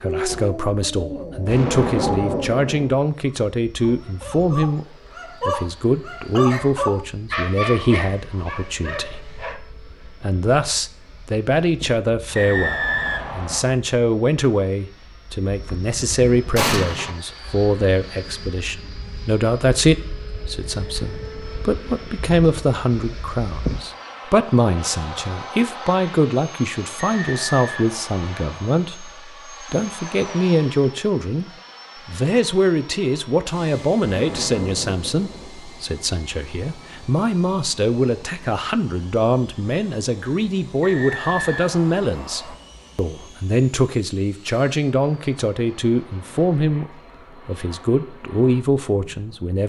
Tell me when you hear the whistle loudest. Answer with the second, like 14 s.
13 s.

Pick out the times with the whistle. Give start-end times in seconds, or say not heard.
12.3-13.7, 26.9-28.8, 40.8-42.5.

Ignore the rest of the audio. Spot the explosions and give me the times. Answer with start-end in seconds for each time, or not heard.
1.4-3.0, 16.6-17.1, 34.0-35.5.